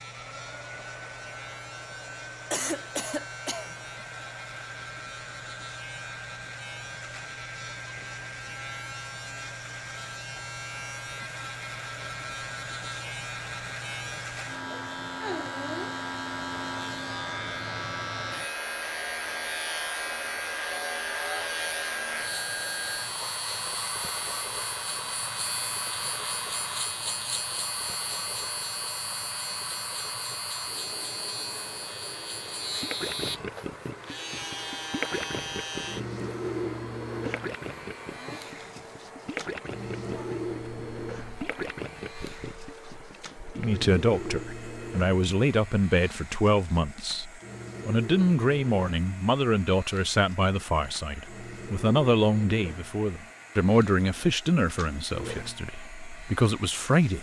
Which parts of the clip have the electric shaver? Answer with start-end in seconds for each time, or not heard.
0.0-57.1.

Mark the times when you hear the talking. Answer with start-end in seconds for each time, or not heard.
43.5-57.1.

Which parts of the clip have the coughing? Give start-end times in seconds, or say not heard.
2.5-3.7.